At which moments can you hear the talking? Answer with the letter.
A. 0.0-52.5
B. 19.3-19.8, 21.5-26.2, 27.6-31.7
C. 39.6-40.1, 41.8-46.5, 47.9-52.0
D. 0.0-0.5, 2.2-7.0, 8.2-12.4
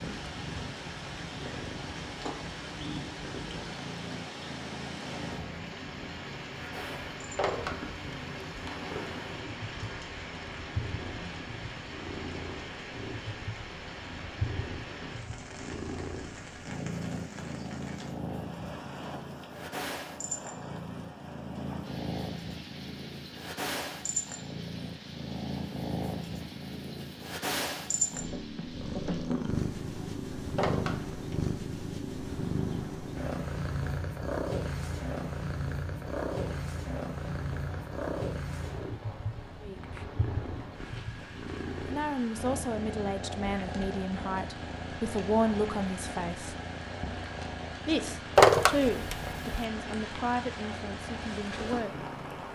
C.